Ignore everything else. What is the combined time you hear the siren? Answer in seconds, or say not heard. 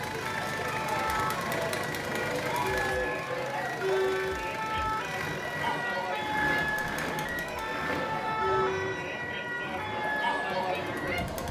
11 s.